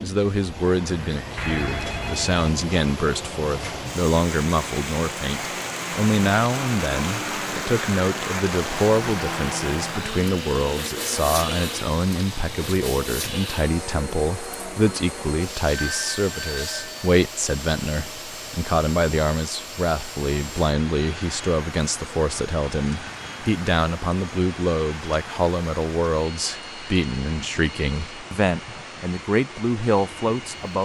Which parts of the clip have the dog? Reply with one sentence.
The dog can't be heard in this clip.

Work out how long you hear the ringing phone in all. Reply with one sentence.
The ringing phone can be heard for 3 seconds in total.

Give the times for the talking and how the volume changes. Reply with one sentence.
You can hear the talking from 0.0 to 30.8 s, at a steady volume.